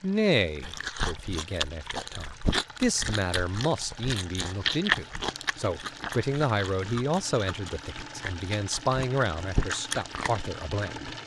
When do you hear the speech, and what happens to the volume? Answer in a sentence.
You can hear the speech from 0.0 to 11.2 s, getting louder.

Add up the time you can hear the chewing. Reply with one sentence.
The chewing can be heard for 10 seconds in total.